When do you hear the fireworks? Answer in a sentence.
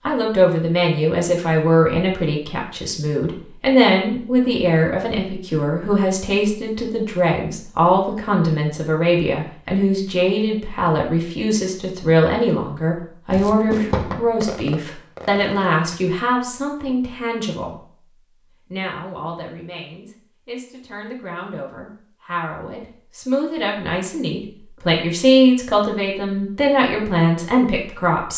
The fireworks can be heard from 13.3 to 16.0 s.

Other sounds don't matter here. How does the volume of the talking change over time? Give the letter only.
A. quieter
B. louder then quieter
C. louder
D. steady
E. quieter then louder
E.